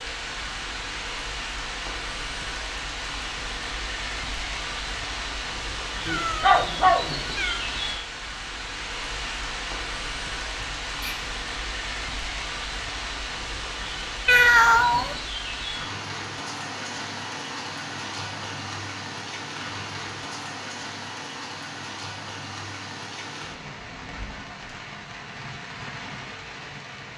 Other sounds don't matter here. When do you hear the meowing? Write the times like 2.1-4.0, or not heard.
6.0-7.7, 14.2-15.2.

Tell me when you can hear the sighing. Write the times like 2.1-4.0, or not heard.
10.6-11.2.